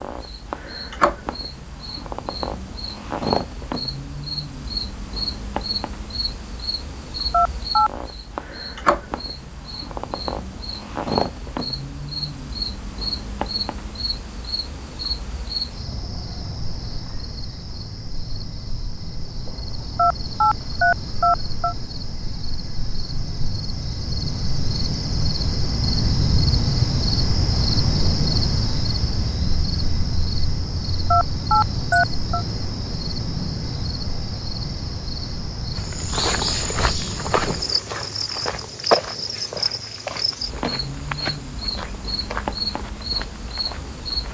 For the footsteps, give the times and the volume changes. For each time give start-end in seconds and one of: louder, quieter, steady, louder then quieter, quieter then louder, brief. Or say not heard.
35.8-44.2 quieter.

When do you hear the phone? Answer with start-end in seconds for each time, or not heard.
7.3-7.9, 19.9-21.8, 31.1-32.5.